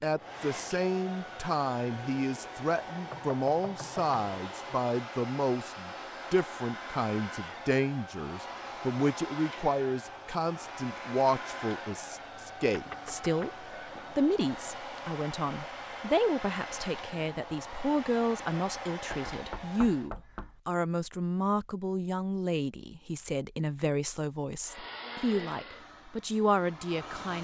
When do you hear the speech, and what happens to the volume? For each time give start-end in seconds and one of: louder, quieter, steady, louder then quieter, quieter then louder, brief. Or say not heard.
0.0-27.4 steady.